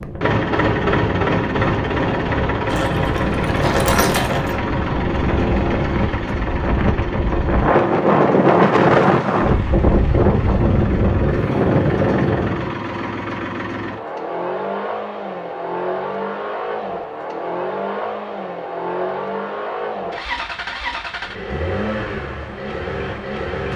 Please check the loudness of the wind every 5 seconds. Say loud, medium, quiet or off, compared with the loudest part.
medium, loud, loud, off, off.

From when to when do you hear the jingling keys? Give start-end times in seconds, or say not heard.
2.6-4.5.